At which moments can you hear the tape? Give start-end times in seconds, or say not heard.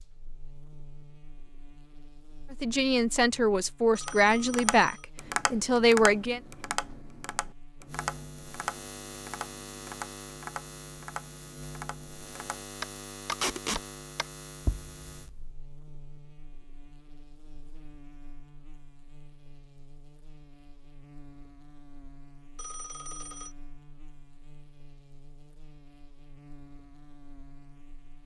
13.3-13.8.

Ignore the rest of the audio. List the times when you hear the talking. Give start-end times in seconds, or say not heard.
2.5-6.4.